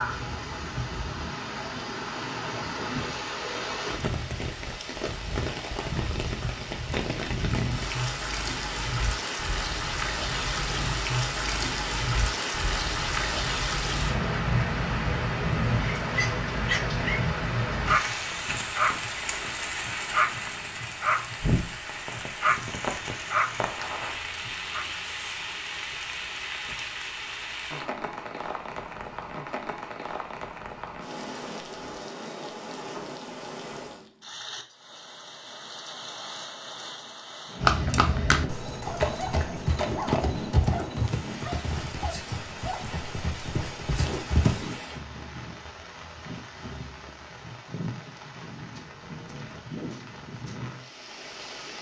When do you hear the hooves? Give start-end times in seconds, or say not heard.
37.6-44.8.